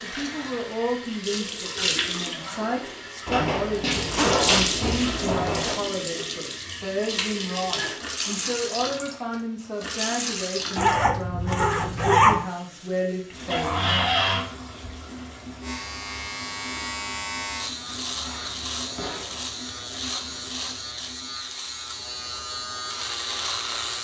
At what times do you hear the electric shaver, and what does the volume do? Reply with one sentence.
You can hear the electric shaver from 15.6 to 23.9 s, at a steady volume.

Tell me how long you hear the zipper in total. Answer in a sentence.
You can hear the zipper for 5 seconds altogether.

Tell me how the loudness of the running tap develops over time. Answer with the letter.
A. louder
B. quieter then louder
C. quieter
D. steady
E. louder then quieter
C.